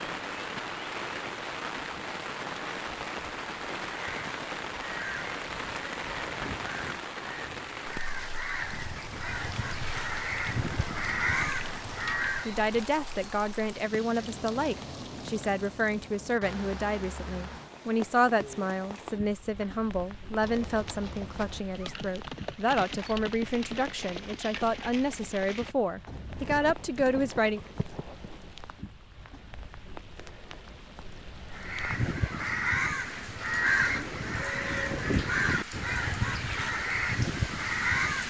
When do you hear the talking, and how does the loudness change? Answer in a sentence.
You can hear the talking from 12.4 to 27.6 s, at a steady volume.